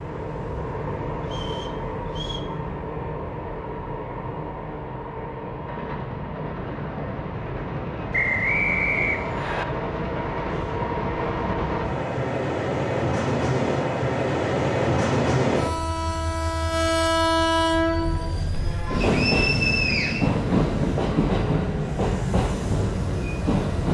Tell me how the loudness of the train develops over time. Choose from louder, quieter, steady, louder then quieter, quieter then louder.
louder.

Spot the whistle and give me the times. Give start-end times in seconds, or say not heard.
1.2-2.5, 8.1-9.7, 19.0-20.3.